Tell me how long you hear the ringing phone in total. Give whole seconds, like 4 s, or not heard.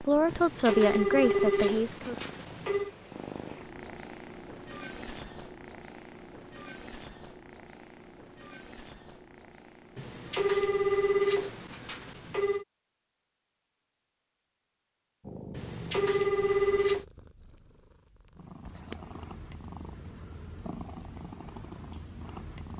7 s.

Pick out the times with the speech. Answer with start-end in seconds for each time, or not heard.
0.0-2.1.